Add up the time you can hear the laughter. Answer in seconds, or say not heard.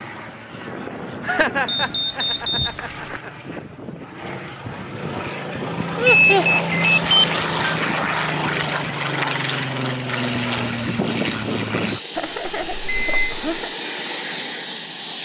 4 s.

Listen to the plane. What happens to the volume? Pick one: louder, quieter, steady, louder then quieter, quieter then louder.
louder.